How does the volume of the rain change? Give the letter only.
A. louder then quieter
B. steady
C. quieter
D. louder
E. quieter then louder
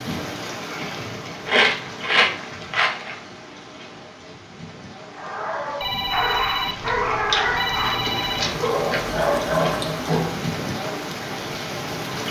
E.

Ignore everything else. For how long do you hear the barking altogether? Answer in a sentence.
You can hear the barking for 5 seconds altogether.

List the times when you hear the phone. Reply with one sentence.
The phone can be heard from 5.8 to 8.5 s.